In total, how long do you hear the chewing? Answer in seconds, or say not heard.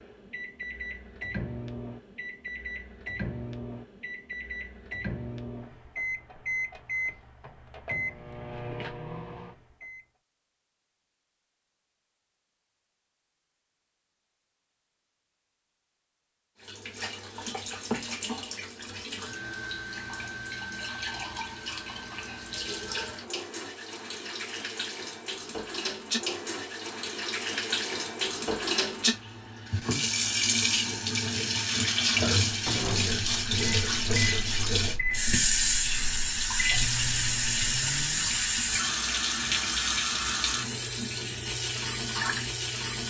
not heard.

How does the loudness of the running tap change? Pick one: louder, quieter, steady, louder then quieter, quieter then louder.
louder.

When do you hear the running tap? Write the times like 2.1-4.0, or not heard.
16.6-43.0.